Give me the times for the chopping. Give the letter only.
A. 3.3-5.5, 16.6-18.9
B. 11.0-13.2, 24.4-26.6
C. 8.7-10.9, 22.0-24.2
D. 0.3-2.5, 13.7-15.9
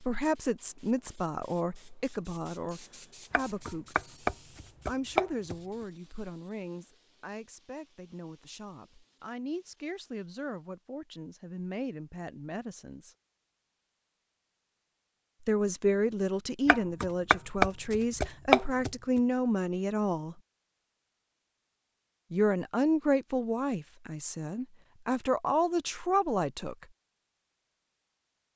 A.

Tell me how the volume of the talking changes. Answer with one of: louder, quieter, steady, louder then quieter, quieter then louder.
quieter then louder.